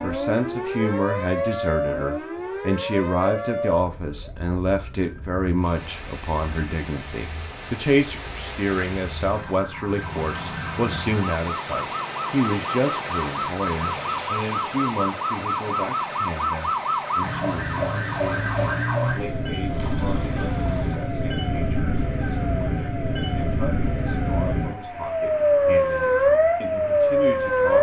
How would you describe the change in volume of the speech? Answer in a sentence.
The loudness of the speech goes down.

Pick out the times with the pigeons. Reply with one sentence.
You can't hear the pigeons here.